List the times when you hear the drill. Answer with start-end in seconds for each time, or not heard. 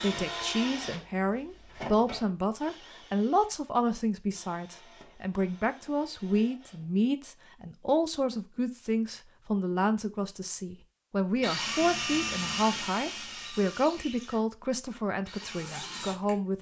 0.0-7.0, 11.4-16.4.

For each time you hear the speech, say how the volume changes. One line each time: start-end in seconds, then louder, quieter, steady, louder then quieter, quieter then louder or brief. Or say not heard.
0.0-16.5 steady.